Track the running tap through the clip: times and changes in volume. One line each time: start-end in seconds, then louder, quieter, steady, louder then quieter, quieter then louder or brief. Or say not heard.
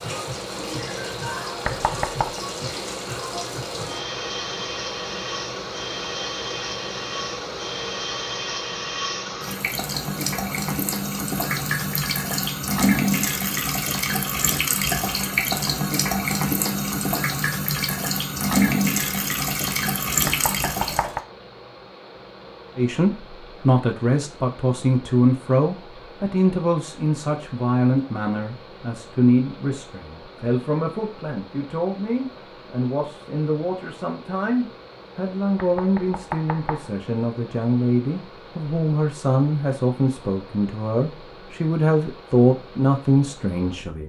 0.0-21.2 louder.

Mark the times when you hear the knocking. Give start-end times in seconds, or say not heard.
1.6-2.4, 20.2-21.2, 35.5-36.9.